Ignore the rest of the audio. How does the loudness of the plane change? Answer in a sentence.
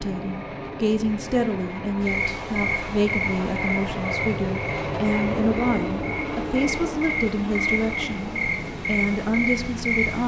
The volume of the plane goes up, then down.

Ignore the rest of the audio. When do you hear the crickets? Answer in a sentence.
The crickets can be heard from 2.0 to 10.2 s.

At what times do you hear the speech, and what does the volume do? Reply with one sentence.
You can hear the speech from 0.0 to 10.2 s, at a steady volume.